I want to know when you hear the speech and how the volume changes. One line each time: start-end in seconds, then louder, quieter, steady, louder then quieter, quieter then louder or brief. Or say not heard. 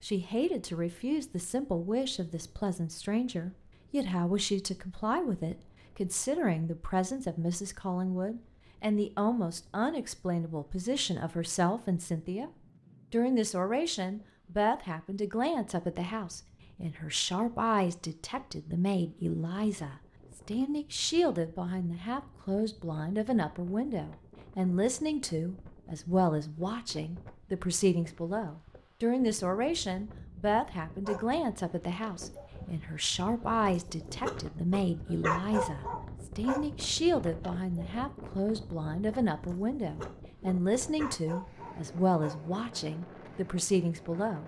0.0-12.5 steady
13.1-44.4 steady.